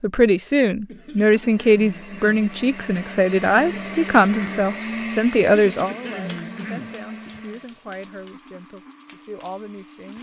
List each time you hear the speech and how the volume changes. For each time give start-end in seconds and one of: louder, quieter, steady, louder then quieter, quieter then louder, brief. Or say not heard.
0.0-10.1 quieter.